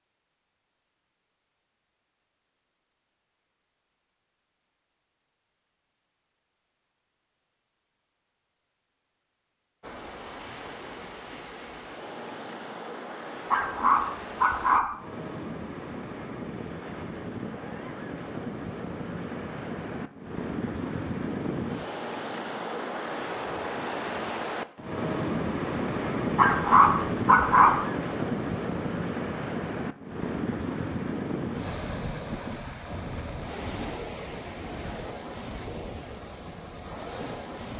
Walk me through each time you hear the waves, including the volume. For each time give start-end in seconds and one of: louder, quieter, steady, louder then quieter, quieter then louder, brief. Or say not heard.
9.8-37.7 louder then quieter.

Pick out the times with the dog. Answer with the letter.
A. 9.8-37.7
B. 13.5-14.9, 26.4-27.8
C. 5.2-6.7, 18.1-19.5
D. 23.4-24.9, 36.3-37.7
B.